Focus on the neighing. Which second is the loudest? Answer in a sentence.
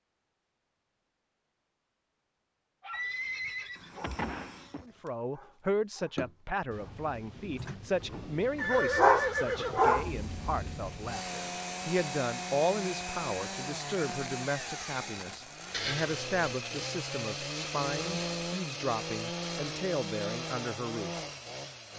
The volume of the neighing peaks at 9 seconds.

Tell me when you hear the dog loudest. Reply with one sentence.
The loudest moment of the dog is at 9 seconds.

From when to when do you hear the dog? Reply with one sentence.
You can hear the dog from 2.8 to 10.1 s.